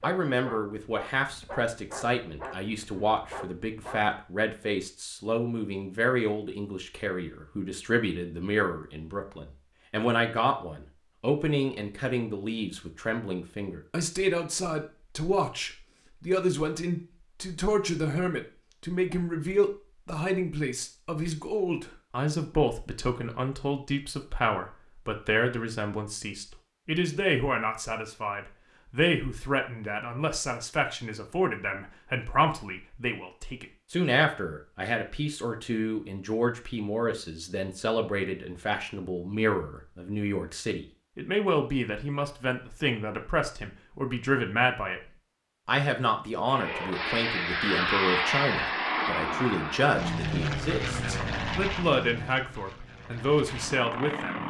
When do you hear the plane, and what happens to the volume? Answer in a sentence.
The plane can be heard from 46.5 to 54.4 s, getting quieter.